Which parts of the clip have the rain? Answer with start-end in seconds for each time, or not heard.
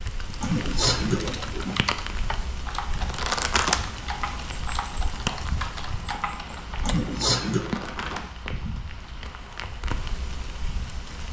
0.0-11.2.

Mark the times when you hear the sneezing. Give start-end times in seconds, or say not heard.
0.4-1.8, 6.8-7.8.